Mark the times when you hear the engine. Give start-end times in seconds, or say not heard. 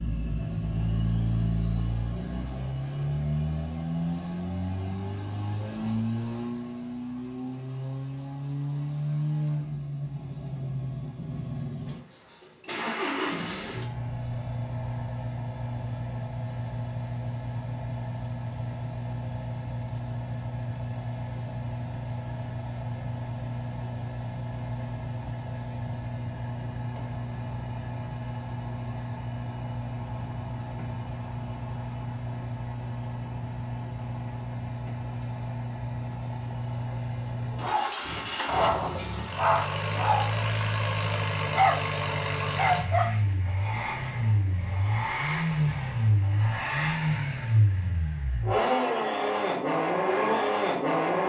0.0-51.2.